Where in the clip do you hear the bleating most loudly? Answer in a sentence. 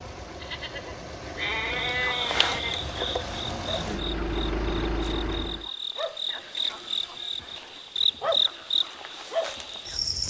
The loudest moment of the bleating is at 2 seconds.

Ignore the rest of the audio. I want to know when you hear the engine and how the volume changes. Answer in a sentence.
You can hear the engine from 0.0 to 5.7 s, getting louder.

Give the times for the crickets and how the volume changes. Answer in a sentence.
You can hear the crickets from 1.6 to 10.2 s, getting quieter then louder.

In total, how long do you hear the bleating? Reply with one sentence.
You can hear the bleating for 4 seconds altogether.